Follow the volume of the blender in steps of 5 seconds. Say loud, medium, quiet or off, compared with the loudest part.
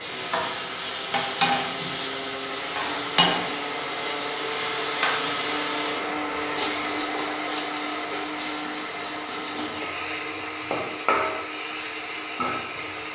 loud, loud, medium.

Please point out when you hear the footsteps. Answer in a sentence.
You can't hear the footsteps here.